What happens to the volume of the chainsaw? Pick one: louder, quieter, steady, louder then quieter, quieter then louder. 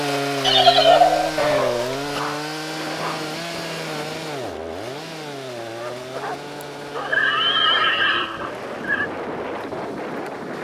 quieter.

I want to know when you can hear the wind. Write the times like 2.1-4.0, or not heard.
2.6-10.5.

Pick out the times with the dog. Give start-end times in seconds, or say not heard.
1.4-3.3, 5.6-8.4.